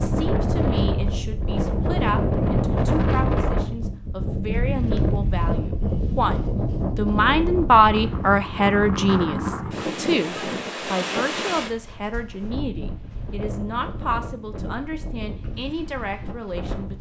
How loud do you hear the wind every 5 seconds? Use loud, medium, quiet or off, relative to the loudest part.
loud, loud, medium, quiet.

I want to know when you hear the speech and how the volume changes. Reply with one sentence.
The speech can be heard from 0.0 to 16.9 s, getting louder then quieter.